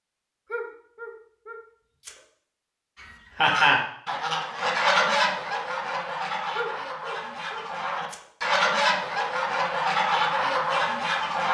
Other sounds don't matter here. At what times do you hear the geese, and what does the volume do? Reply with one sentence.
The geese can be heard from 3.0 to 11.4 s, getting quieter then louder.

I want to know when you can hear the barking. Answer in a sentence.
You can hear the barking from 0.5 to 2.2 s and from 6.5 to 8.2 s.